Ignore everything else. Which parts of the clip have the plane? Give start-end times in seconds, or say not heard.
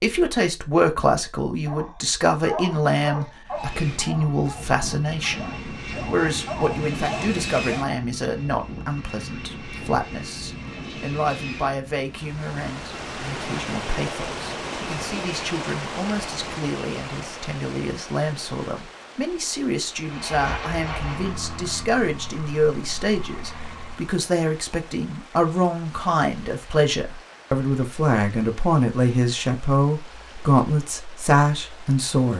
3.5-17.5, 19.9-24.1.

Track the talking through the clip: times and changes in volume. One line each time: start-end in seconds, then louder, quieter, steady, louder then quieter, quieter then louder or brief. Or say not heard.
0.0-32.3 quieter then louder.